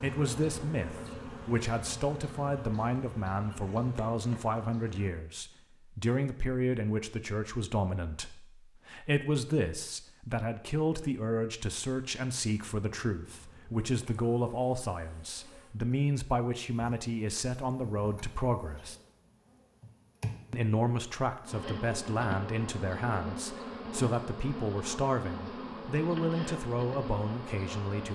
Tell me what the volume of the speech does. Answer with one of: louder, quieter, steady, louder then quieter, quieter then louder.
steady.